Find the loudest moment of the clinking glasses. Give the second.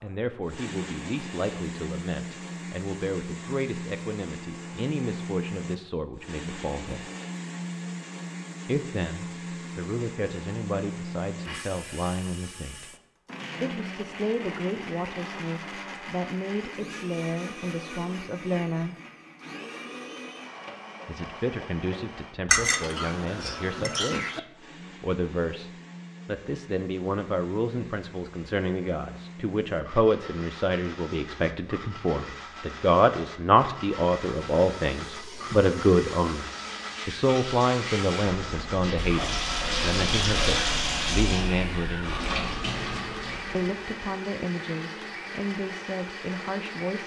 23 s.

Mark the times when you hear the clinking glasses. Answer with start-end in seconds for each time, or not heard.
22.4-24.4.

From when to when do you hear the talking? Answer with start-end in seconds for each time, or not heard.
0.0-7.1, 8.7-12.9, 13.6-18.9, 21.1-42.4, 43.5-47.0.